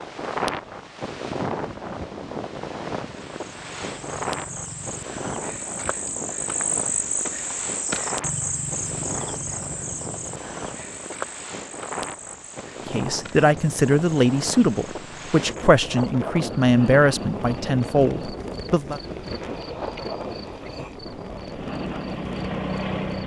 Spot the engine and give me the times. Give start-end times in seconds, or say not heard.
21.4-23.2.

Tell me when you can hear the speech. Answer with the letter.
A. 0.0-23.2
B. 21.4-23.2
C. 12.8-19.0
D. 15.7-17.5
C.